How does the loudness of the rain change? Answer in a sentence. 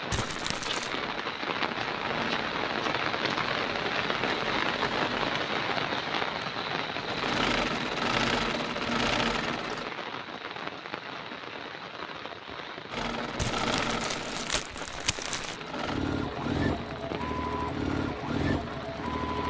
The loudness of the rain goes down.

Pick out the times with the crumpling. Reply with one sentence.
You can hear the crumpling from 0.1 to 0.9 s and from 13.3 to 15.6 s.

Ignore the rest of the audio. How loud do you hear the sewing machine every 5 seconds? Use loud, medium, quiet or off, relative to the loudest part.
medium, loud, loud, loud.